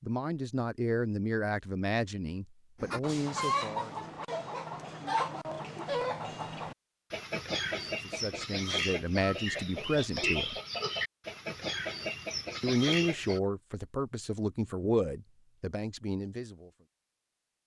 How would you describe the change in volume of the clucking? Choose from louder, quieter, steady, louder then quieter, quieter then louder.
steady.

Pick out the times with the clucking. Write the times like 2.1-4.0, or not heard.
2.8-13.4.